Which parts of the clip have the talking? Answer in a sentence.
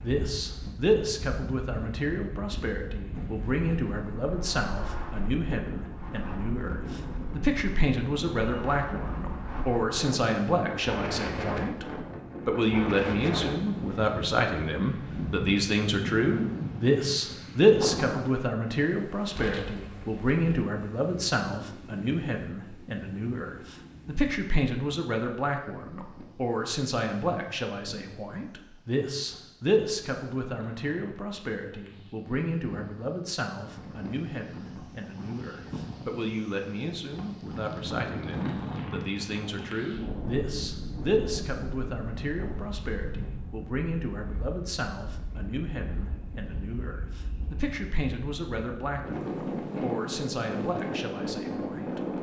You can hear the talking from 0.0 to 11.8 s and from 12.4 to 52.0 s.